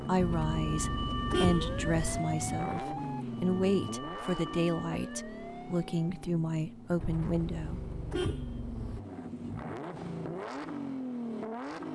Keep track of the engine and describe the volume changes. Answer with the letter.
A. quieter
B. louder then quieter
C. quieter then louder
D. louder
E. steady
C.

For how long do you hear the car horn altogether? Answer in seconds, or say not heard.
4 s.